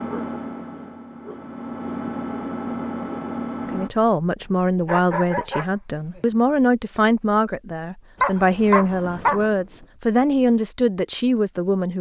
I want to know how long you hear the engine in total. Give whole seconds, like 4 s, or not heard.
4 s.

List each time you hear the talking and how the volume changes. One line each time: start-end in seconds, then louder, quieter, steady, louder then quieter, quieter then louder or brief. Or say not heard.
3.7-11.9 steady.